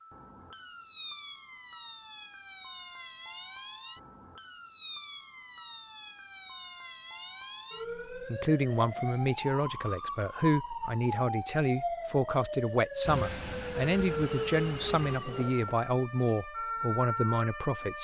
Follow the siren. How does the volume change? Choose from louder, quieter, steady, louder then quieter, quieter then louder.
steady.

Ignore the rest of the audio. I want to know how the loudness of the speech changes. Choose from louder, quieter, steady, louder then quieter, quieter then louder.
steady.